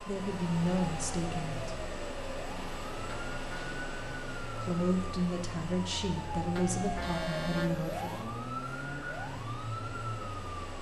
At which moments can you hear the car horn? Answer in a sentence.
The car horn can be heard from 3.0 to 3.8 s and from 6.5 to 8.2 s.